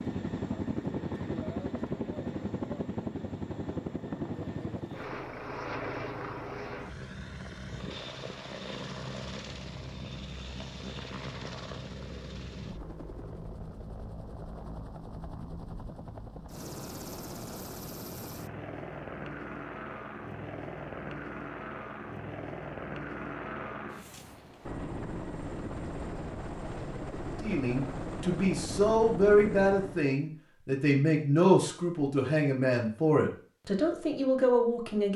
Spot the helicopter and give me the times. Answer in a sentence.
You can hear the helicopter from 0.0 to 30.1 s.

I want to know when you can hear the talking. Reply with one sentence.
The talking can be heard from 27.4 to 35.1 s.